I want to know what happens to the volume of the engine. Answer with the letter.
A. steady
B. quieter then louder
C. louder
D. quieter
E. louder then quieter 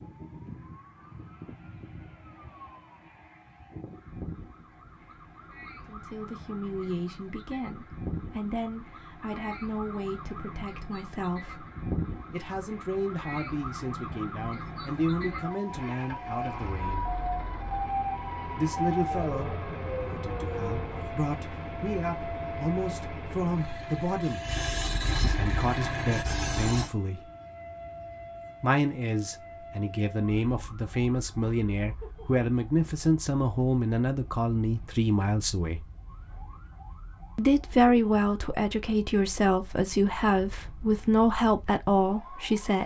C.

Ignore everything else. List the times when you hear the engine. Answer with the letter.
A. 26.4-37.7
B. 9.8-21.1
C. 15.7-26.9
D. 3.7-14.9
C.